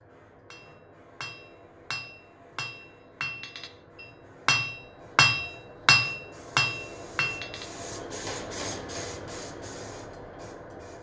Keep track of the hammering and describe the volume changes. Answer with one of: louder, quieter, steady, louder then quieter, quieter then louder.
louder then quieter.